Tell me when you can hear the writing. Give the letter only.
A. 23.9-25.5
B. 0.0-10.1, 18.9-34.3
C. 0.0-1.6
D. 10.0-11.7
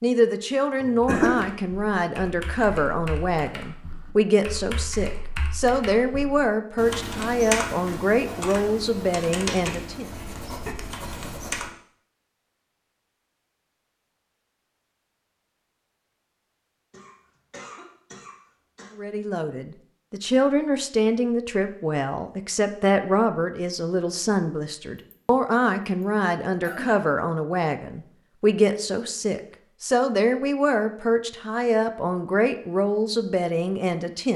D.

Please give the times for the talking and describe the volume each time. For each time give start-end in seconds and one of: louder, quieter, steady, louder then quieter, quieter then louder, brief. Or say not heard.
0.0-10.1 steady
18.9-34.3 steady.